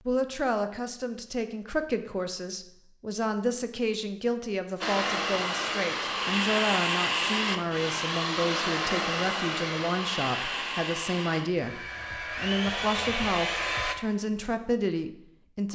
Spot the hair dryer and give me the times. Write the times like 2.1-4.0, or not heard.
4.8-13.9.